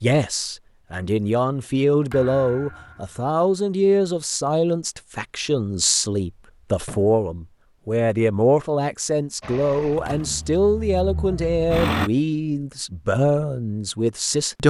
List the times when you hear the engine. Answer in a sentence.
The engine can be heard from 9.4 to 12.1 s.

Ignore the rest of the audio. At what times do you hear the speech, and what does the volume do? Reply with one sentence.
The speech can be heard from 0.0 to 14.6 s, at a steady volume.